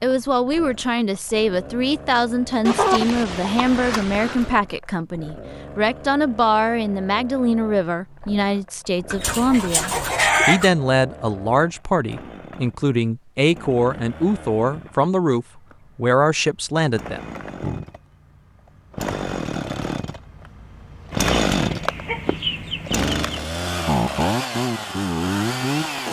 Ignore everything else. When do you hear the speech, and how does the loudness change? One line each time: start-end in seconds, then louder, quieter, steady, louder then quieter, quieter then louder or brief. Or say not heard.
0.0-17.2 steady.